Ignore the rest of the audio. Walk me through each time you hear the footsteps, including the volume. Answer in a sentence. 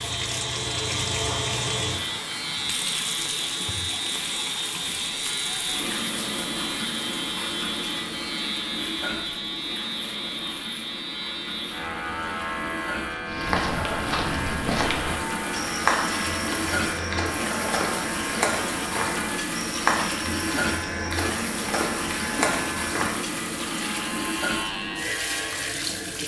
The footsteps can be heard from 13.2 to 23.1 s, at a steady volume.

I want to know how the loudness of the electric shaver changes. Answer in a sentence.
The loudness of the electric shaver stays about the same.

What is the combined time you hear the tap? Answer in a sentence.
You can hear the tap for 26 seconds altogether.